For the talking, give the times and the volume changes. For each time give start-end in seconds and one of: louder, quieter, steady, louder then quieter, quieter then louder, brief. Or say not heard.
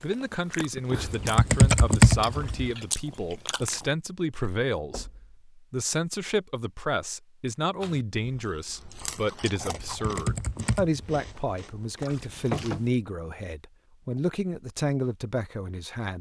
0.0-16.1 steady.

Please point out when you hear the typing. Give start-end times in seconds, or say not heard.
0.9-2.7, 9.6-11.2.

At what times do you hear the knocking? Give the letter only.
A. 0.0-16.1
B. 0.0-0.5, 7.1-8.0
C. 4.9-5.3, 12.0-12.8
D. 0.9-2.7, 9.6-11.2
C.